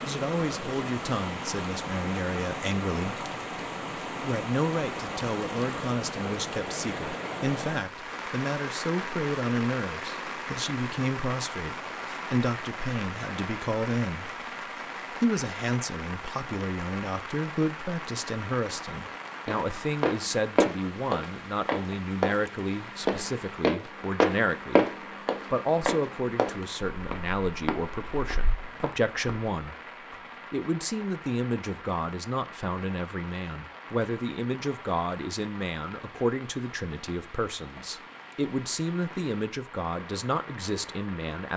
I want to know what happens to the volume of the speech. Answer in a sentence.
The volume of the speech stays about the same.